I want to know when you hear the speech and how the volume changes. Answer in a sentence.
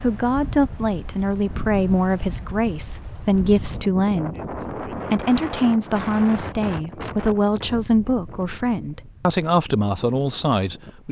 The speech can be heard from 0.0 to 11.0 s, at a steady volume.